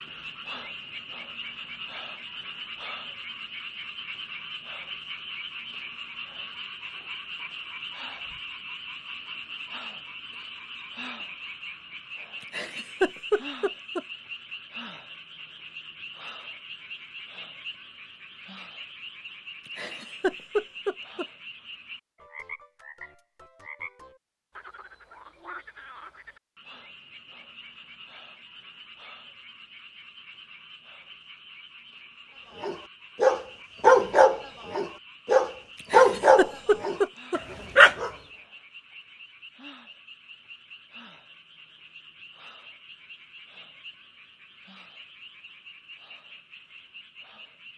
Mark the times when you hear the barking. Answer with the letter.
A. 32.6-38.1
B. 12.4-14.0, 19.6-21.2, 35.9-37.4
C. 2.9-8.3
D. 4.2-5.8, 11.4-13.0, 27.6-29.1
A.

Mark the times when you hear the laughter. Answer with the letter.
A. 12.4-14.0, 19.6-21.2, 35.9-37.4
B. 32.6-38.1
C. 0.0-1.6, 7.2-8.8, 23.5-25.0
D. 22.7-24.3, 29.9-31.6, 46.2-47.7
A.